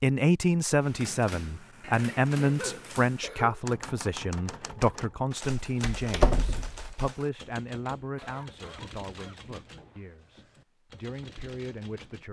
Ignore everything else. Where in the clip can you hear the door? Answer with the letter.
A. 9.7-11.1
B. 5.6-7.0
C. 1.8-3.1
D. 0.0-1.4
B.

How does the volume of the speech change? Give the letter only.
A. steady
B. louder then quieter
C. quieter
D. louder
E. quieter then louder
C.